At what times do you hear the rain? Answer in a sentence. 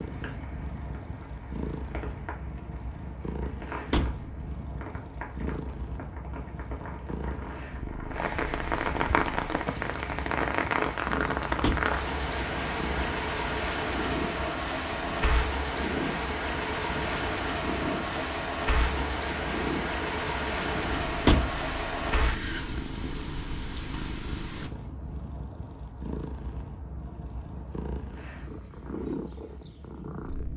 You can hear the rain from 0.0 to 24.7 s.